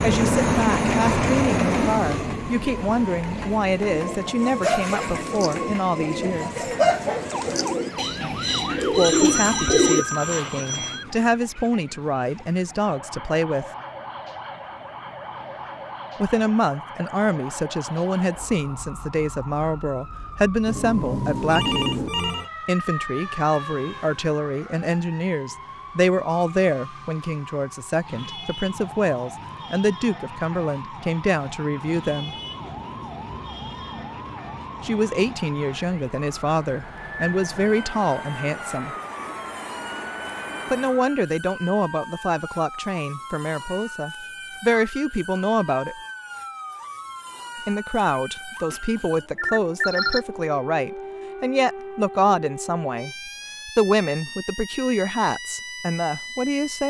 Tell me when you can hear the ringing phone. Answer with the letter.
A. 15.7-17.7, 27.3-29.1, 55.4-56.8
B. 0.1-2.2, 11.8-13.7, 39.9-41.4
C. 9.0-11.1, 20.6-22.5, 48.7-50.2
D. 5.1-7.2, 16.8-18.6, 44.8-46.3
C.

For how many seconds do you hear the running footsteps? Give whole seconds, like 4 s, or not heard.
not heard.